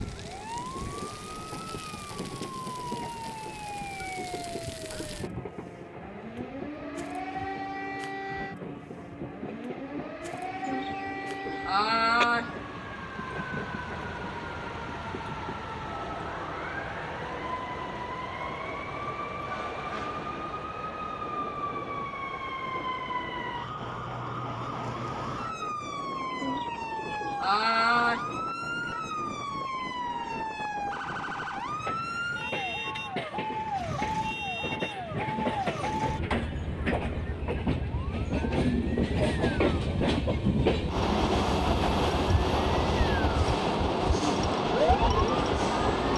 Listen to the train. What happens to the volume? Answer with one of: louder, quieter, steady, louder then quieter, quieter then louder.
louder.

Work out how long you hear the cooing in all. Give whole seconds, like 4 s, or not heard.
4 s.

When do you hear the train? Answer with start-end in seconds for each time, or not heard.
0.0-46.1.